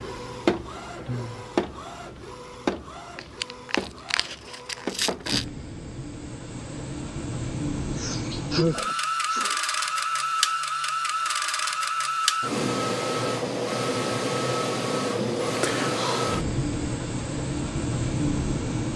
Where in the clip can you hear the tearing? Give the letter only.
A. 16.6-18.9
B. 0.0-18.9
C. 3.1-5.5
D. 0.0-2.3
C.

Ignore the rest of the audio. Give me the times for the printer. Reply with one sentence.
You can hear the printer from 0.0 to 18.9 s.